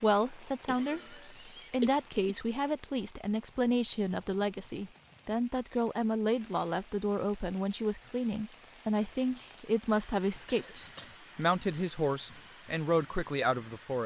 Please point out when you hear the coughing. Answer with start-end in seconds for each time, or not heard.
0.7-2.4, 10.4-11.1.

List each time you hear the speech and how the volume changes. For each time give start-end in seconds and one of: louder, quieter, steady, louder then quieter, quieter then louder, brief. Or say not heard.
0.0-14.0 steady.